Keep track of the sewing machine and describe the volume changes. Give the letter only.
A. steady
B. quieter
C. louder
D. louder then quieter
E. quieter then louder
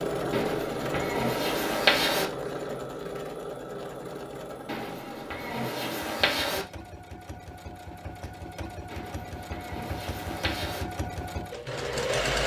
E.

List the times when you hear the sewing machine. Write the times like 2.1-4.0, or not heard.
0.0-12.4.